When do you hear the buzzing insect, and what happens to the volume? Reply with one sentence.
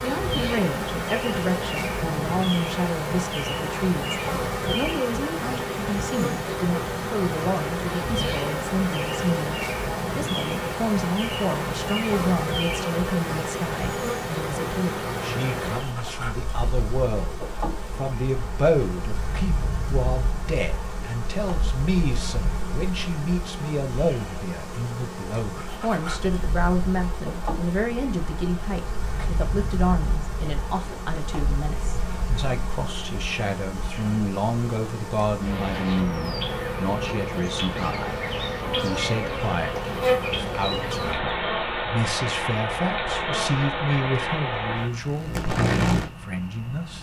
You can hear the buzzing insect from 0.0 to 46.9 s, getting quieter then louder.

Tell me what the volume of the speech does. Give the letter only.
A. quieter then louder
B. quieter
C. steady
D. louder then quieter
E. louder
C.